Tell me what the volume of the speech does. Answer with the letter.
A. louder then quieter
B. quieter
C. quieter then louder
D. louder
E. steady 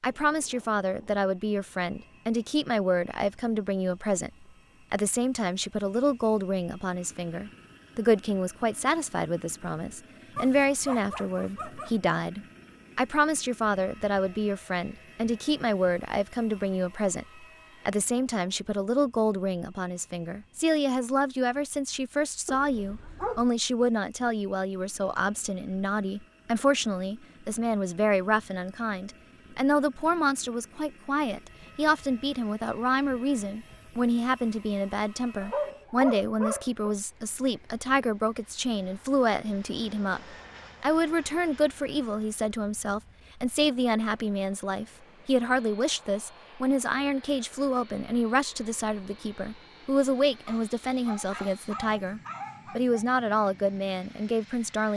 E.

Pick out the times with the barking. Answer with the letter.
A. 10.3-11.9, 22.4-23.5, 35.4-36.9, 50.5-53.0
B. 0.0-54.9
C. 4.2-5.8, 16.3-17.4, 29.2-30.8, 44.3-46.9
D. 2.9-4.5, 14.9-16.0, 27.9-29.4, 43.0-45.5
A.